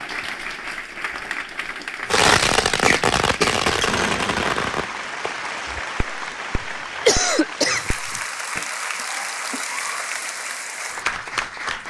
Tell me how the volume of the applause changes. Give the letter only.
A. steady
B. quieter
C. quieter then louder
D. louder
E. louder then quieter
A.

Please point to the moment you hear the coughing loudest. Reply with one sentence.
The loudest moment of the coughing is at 7 seconds.